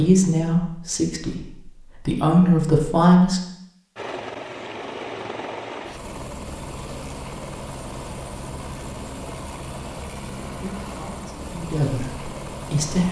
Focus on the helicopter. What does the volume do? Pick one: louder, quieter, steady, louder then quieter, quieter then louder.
steady.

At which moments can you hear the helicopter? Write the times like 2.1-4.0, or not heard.
4.0-13.0.